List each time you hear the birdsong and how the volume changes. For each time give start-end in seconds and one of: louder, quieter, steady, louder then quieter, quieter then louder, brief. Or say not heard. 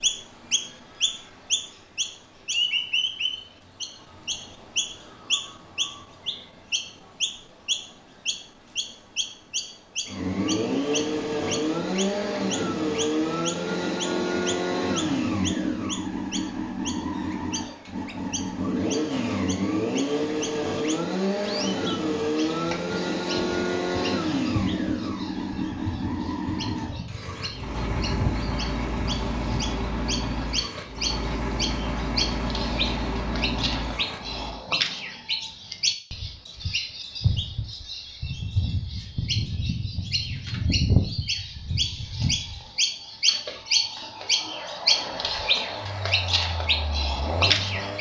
0.0-47.9 quieter then louder.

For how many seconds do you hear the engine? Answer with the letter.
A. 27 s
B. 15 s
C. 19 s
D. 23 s
A.